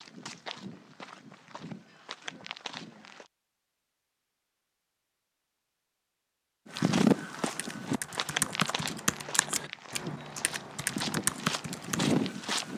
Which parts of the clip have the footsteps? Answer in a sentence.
You can hear the footsteps from 0.0 to 3.3 s and from 6.7 to 12.7 s.